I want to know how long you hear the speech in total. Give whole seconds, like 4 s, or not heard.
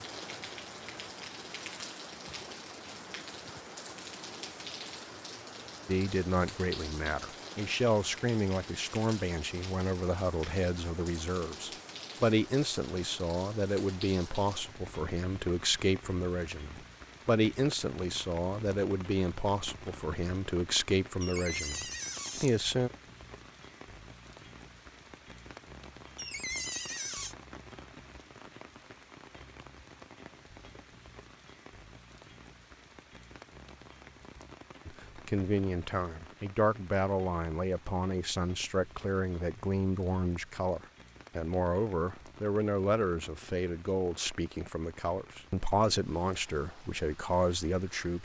30 s.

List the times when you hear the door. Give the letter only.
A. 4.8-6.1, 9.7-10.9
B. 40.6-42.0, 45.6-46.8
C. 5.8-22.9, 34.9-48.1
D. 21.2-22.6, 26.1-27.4
D.